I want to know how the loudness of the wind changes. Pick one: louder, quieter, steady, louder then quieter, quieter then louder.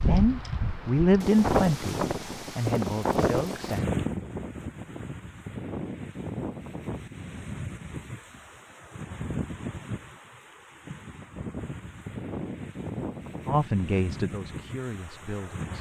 quieter.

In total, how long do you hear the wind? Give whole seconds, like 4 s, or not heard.
16 s.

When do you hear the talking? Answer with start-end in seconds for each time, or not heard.
0.0-3.8, 13.4-15.7.